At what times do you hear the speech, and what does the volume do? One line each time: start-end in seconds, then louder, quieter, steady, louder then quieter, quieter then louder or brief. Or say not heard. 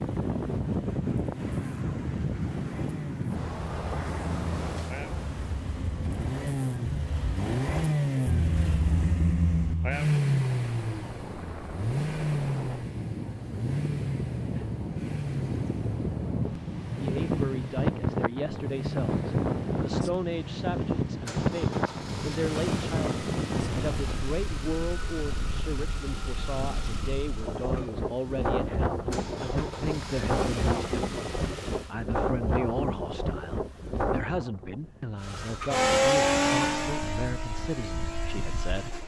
16.9-39.0 steady.